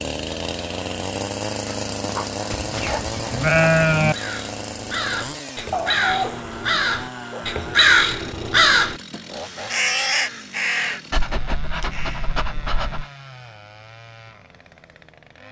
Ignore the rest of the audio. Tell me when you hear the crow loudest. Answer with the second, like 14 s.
8 s.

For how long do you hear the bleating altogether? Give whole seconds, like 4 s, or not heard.
2 s.